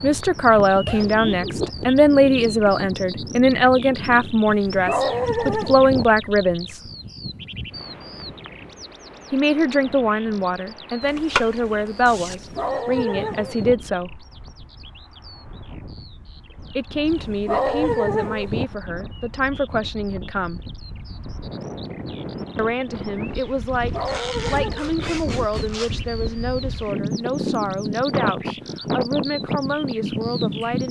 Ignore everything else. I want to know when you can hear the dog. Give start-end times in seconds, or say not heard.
4.5-6.0, 12.3-13.8, 17.1-18.6, 23.8-25.1.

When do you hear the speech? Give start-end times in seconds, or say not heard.
0.0-6.8, 9.3-14.2, 16.8-20.6, 22.6-30.8.